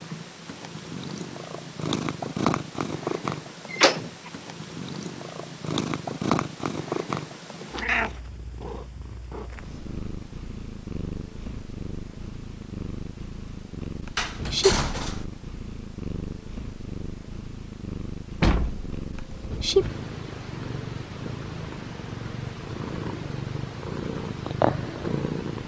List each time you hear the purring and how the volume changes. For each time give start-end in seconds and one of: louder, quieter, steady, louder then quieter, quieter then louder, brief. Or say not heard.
0.0-25.6 steady.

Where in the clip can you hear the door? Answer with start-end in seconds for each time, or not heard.
3.7-4.3, 14.2-15.2, 18.4-19.6.